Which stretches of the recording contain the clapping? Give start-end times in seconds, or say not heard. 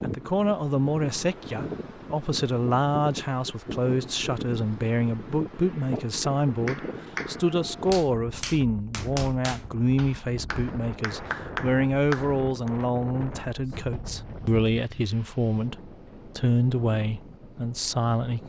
6.7-12.7.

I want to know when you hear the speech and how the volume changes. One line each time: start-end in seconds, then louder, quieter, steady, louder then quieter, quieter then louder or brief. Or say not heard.
0.0-18.4 steady.